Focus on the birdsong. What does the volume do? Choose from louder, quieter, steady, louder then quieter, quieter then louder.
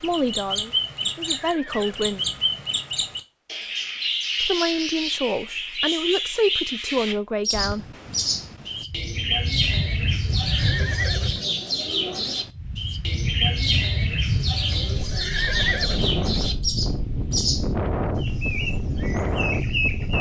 steady.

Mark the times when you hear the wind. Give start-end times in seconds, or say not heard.
7.5-20.1.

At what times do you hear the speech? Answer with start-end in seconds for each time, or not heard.
0.0-2.2, 4.4-7.8.